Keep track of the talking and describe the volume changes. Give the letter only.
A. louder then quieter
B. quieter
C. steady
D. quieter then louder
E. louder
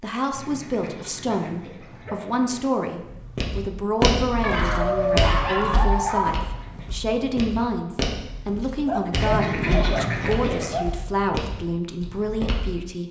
C.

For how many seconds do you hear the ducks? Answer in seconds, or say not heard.
6 s.